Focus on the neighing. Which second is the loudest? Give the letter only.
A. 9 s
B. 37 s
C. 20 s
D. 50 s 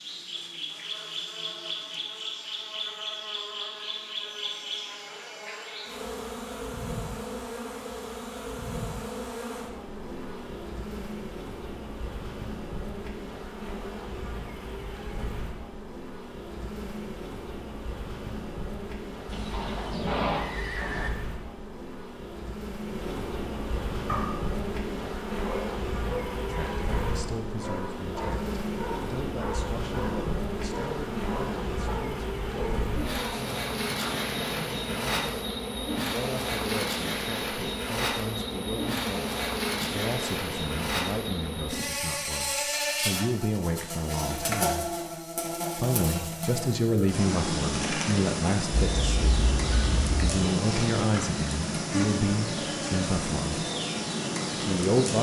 C.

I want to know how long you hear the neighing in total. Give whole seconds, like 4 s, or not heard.
3 s.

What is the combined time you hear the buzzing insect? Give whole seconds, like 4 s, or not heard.
55 s.